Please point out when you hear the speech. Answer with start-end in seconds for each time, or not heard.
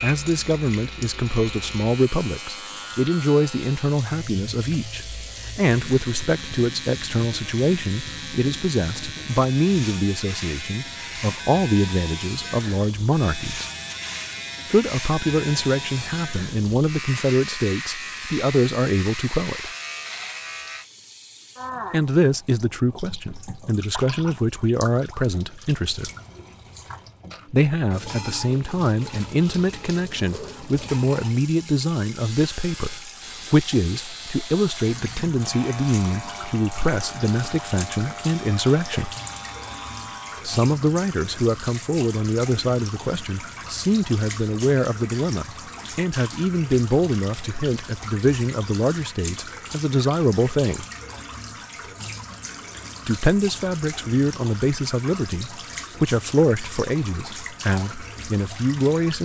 0.0-13.7, 14.7-19.7, 21.9-26.1, 27.5-39.1, 40.5-50.9, 53.0-59.2.